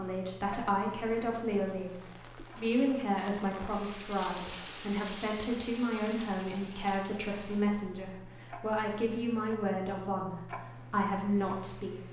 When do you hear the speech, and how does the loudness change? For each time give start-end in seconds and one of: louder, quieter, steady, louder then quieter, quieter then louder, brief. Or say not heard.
0.0-12.0 steady.